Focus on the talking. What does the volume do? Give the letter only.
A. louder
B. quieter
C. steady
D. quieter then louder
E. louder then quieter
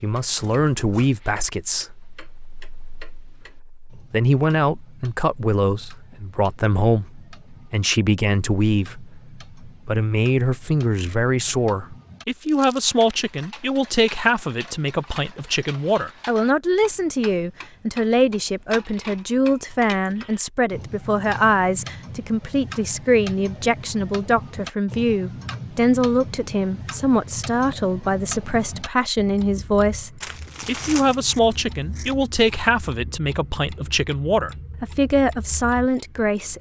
C.